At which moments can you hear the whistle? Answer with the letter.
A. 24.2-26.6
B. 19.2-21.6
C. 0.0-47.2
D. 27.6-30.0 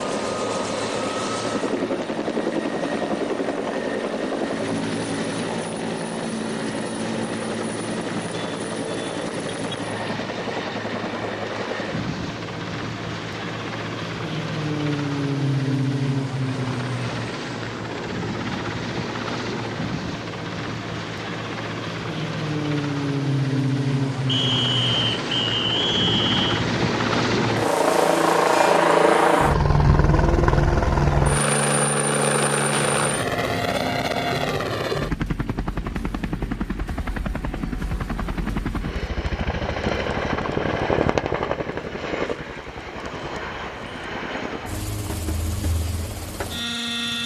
A.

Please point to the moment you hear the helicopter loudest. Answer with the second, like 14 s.
29 s.